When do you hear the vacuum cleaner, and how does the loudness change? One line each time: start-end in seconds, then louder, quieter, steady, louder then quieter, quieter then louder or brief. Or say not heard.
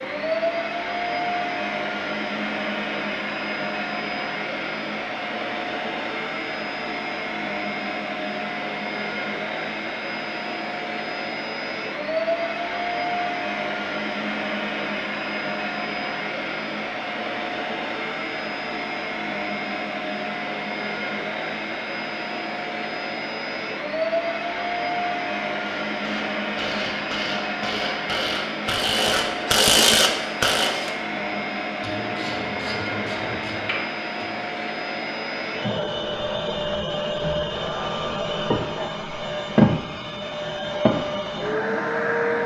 0.0-42.4 steady.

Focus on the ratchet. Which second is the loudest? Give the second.
30 s.